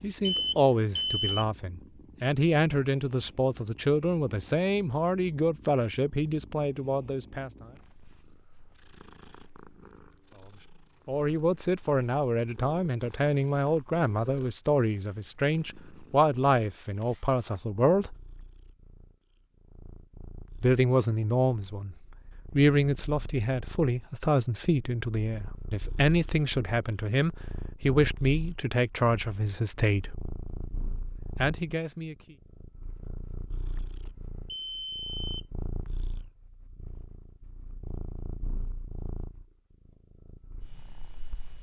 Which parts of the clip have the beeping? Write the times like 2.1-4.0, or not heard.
0.2-1.4, 34.0-35.5.